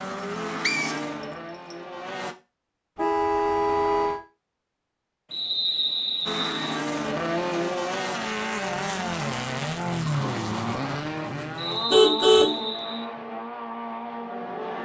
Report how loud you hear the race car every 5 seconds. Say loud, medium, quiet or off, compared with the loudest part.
medium, loud, loud.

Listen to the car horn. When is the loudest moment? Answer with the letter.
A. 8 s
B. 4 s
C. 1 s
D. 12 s
D.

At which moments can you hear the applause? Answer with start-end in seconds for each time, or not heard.
not heard.